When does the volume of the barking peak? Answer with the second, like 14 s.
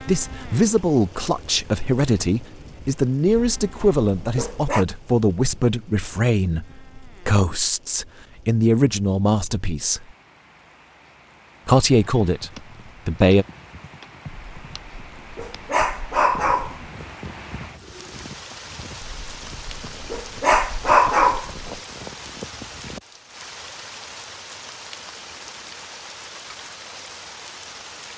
21 s.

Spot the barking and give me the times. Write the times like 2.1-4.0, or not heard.
3.2-4.8, 14.2-16.9, 19.0-21.7.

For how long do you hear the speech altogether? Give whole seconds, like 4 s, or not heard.
12 s.